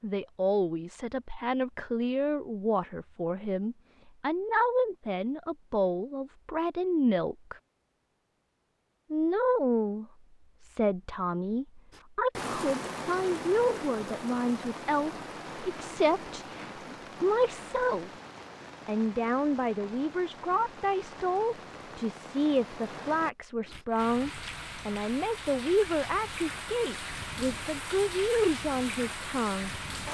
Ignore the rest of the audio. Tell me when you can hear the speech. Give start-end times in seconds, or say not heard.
0.0-7.5, 9.1-18.1, 18.9-29.7.